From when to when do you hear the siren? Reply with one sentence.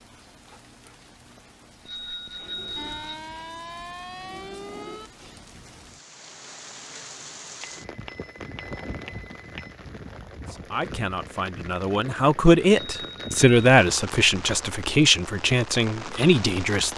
The siren can be heard from 2.8 to 5.1 s.